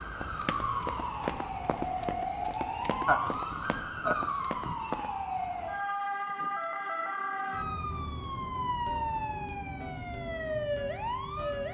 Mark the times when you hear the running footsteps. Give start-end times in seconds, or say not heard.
0.1-5.2.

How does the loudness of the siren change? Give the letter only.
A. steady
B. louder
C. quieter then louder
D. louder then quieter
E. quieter
A.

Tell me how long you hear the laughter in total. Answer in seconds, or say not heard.
2 s.